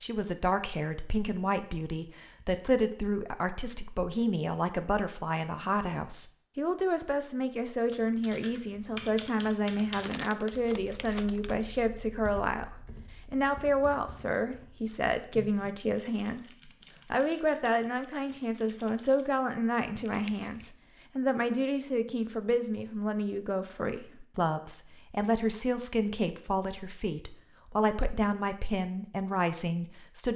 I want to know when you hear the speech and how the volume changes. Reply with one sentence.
The speech can be heard from 0.0 to 30.3 s, at a steady volume.